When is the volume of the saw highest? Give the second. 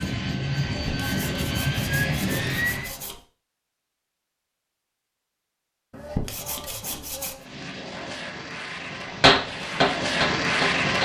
6 s.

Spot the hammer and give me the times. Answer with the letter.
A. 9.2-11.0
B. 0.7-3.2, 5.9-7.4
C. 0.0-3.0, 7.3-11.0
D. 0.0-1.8
A.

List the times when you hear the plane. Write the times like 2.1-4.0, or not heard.
0.0-3.0, 7.3-11.0.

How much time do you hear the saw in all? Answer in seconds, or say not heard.
4 s.